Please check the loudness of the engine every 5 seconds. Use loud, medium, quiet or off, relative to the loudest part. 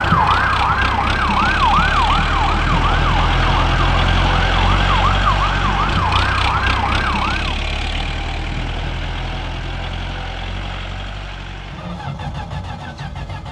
loud, loud, medium.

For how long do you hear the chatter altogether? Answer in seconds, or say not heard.
not heard.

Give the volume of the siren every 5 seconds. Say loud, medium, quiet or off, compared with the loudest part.
loud, loud, off.